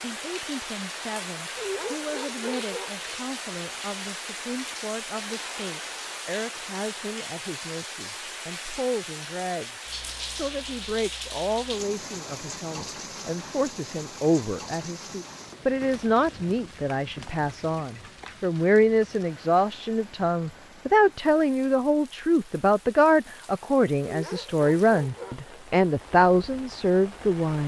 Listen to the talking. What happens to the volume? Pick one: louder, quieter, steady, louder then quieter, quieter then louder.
louder.